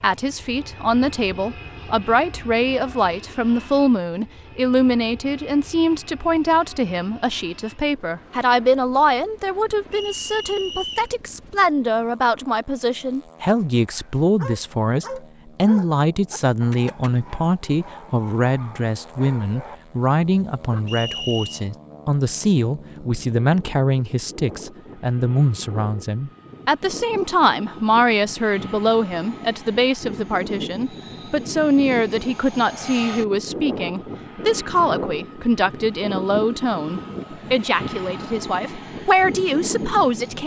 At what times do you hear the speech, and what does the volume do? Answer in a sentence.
You can hear the speech from 0.0 to 40.4 s, at a steady volume.